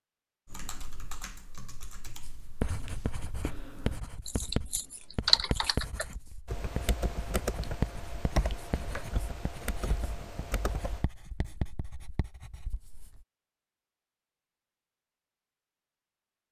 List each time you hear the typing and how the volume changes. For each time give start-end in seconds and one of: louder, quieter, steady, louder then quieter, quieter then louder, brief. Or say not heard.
0.5-11.1 louder then quieter.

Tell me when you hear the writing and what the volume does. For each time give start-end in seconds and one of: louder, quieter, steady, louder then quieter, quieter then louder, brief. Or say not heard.
2.2-13.2 quieter.